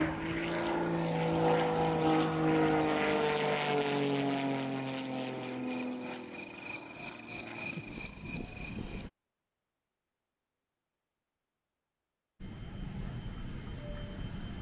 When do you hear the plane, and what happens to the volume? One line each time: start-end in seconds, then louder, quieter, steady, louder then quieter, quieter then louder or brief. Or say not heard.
0.0-9.1 quieter
12.4-14.5 brief.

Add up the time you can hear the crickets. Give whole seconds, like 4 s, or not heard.
9 s.